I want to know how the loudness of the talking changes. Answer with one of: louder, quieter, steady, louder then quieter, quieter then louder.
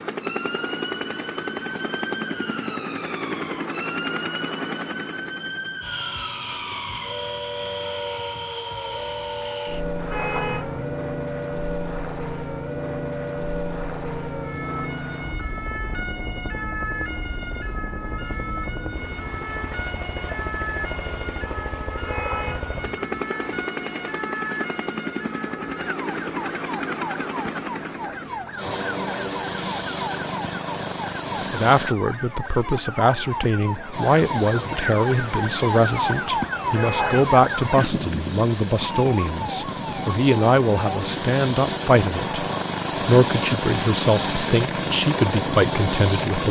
steady.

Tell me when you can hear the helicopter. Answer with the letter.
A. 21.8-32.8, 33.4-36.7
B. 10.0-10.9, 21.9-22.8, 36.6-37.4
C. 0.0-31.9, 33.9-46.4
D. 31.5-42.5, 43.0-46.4
C.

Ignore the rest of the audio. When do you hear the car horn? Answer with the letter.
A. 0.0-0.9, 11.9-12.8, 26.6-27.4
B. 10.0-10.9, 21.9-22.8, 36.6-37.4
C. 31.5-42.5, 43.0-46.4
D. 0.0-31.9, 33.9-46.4
B.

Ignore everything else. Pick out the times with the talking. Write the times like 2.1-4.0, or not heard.
31.5-42.5, 43.0-46.4.